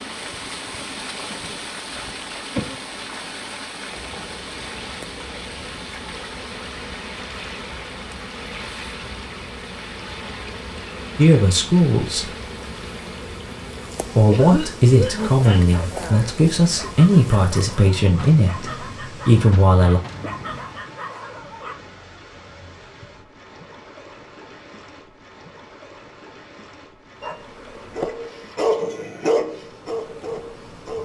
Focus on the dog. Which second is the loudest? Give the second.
29 s.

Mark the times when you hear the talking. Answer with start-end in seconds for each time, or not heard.
11.2-12.3, 14.2-20.0.